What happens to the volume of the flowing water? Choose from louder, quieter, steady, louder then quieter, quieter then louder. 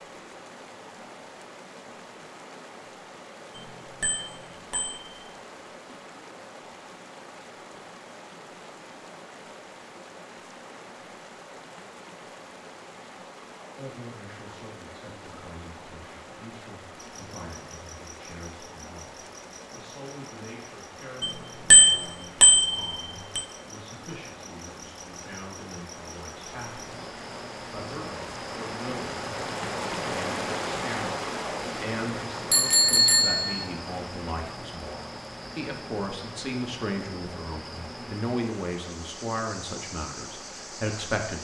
louder then quieter.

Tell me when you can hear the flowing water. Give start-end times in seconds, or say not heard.
0.0-41.3.